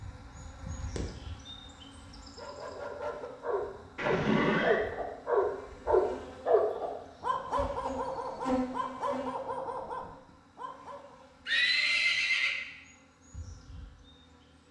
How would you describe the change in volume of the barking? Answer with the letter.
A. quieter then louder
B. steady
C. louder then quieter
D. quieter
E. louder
C.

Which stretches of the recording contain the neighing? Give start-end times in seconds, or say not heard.
4.0-4.8, 11.4-12.6.